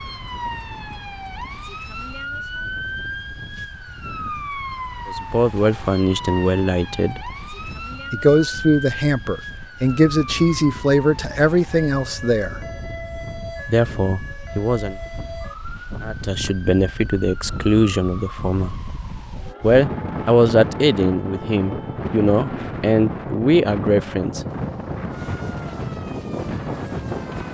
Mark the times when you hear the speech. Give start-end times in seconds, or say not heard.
5.0-7.3, 8.1-12.6, 13.7-14.9, 16.0-18.8, 19.6-24.4.